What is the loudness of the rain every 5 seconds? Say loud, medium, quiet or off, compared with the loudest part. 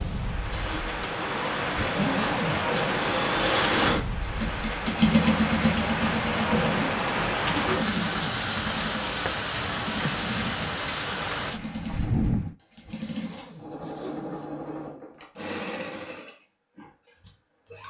loud, loud, loud, off.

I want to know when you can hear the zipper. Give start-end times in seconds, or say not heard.
1.8-2.6, 6.8-8.3, 12.8-14.5.